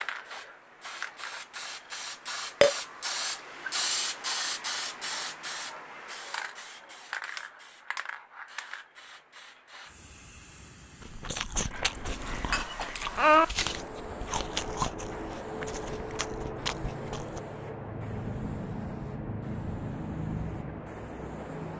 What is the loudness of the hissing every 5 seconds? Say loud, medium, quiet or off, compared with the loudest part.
loud, medium, medium, loud, loud.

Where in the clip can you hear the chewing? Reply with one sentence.
The chewing can be heard from 11.0 to 17.4 s.